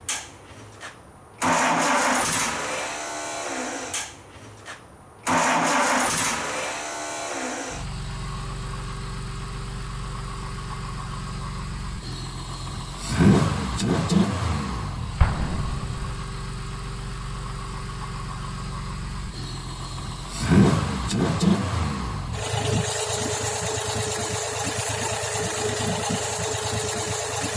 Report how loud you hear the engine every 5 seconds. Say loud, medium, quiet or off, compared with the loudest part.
loud, loud, loud, medium, loud, loud.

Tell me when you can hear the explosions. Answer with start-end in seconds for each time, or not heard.
15.2-16.1.